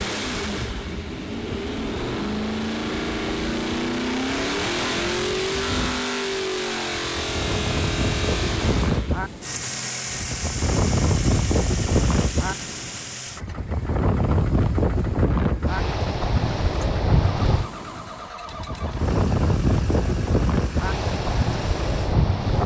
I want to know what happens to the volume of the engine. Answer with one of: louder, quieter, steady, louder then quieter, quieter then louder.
quieter.